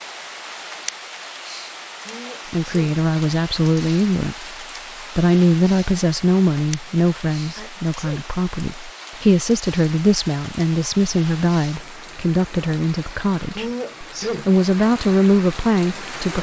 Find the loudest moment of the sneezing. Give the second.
14 s.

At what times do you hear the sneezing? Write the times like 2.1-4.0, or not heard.
2.0-3.0, 7.5-8.2, 13.6-14.5.